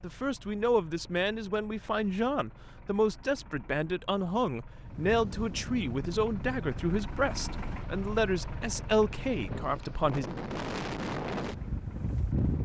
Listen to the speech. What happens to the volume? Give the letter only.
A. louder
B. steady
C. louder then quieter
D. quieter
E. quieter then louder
B.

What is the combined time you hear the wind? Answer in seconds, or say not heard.
8 s.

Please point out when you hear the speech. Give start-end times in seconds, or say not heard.
0.0-10.2.